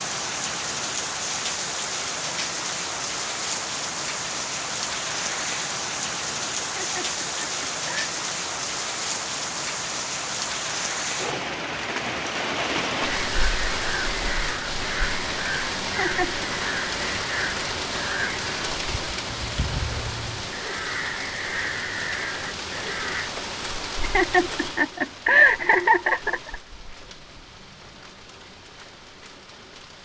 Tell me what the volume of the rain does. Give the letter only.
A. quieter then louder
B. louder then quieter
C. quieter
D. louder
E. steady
C.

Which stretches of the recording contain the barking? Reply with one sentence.
The barking can't be heard in this clip.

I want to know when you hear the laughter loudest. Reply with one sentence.
The volume of the laughter peaks at 25 seconds.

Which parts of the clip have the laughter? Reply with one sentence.
You can hear the laughter from 6.6 to 8.1 s, from 15.8 to 16.4 s and from 24.0 to 26.6 s.